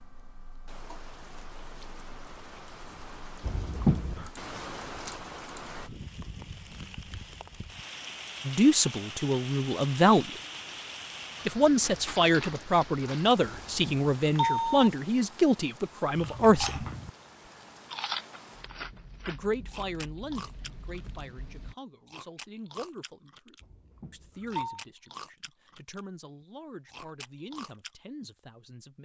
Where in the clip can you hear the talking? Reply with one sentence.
You can hear the talking from 8.4 to 10.3 s, from 11.4 to 16.9 s and from 19.2 to 29.0 s.